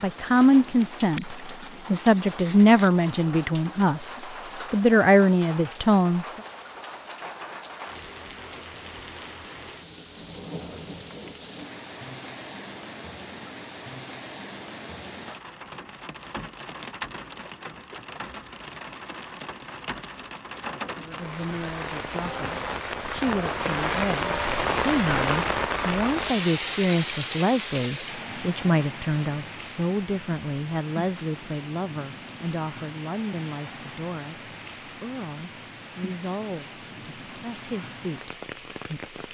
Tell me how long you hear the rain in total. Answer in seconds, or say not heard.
39 s.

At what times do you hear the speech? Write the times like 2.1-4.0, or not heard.
0.0-6.4, 20.9-39.1.